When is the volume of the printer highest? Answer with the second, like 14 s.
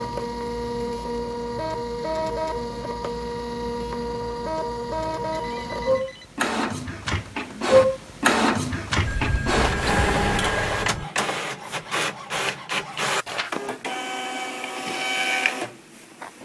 8 s.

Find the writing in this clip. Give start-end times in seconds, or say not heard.
not heard.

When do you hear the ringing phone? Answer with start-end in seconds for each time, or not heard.
5.3-6.3, 9.1-11.1.